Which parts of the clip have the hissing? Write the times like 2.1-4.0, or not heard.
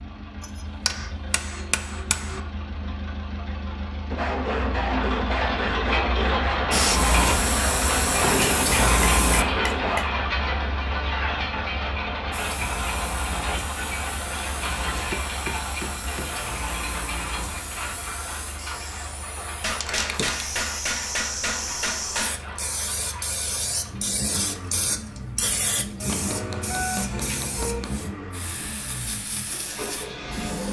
6.7-9.4, 12.3-30.6.